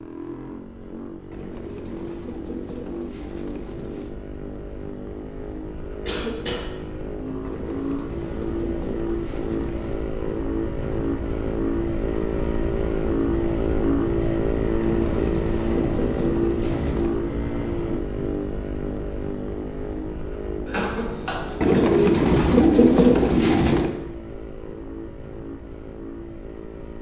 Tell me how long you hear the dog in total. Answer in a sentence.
The dog can't be heard in this clip.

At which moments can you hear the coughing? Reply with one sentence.
The coughing can be heard from 6.0 to 6.7 s and from 20.6 to 21.8 s.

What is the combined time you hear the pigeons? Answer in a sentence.
You can hear the pigeons for 10 seconds altogether.